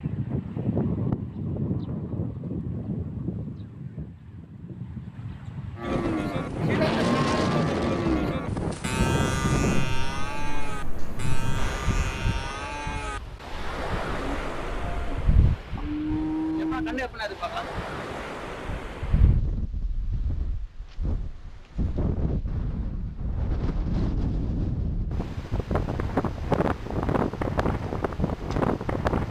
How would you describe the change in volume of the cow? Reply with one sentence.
The volume of the cow goes down, then up.